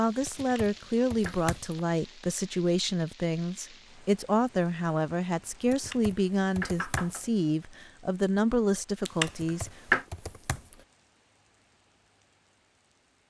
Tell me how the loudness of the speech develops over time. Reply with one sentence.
The loudness of the speech stays about the same.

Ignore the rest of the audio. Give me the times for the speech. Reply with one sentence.
You can hear the speech from 0.0 to 9.7 s.